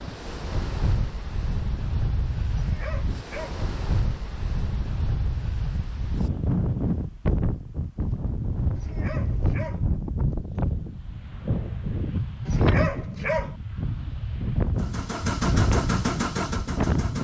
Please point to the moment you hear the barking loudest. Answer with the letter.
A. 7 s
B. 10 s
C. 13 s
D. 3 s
C.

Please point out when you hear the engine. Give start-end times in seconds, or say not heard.
14.8-17.1.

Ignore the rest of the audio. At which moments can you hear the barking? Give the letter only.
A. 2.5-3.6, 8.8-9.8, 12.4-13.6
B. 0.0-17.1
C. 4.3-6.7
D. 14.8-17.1
A.